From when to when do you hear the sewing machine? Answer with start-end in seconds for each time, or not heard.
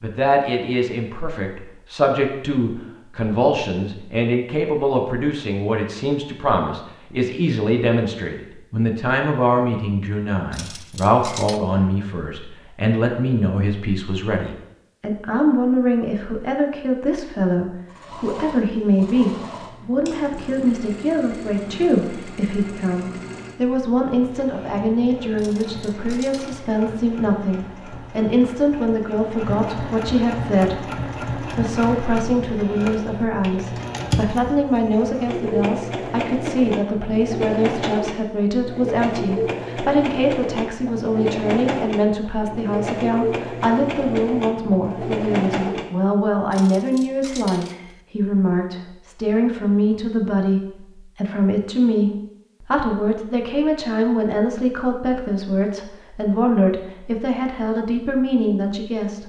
17.9-45.9.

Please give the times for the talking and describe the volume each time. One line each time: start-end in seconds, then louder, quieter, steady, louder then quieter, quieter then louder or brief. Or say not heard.
0.0-59.2 steady.